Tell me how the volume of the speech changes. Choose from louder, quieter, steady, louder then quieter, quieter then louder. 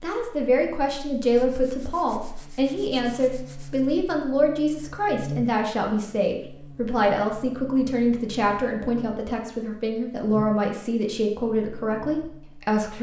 steady.